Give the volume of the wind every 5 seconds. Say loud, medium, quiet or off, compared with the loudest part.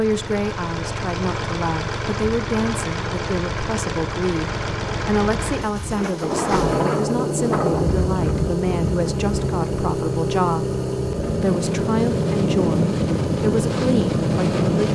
off, loud, loud.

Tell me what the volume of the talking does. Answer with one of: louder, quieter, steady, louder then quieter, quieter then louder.
steady.